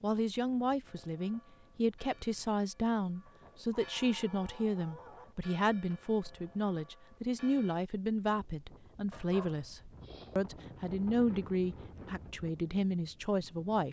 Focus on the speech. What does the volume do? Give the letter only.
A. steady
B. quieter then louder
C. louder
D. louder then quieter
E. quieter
A.